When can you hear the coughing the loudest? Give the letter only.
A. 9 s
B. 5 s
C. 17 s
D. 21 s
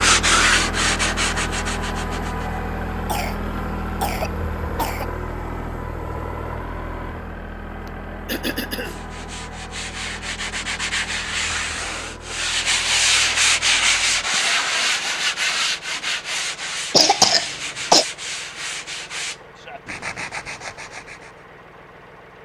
C.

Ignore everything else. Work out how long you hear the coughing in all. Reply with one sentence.
The coughing can be heard for 4 seconds in total.